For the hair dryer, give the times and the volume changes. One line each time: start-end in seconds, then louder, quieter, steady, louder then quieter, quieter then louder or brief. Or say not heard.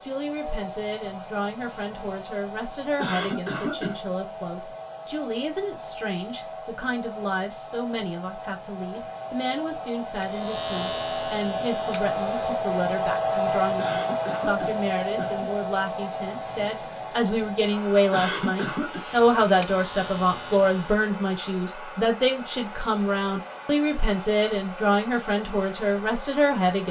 0.0-26.8 louder then quieter.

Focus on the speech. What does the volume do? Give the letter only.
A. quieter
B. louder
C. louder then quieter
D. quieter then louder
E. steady
B.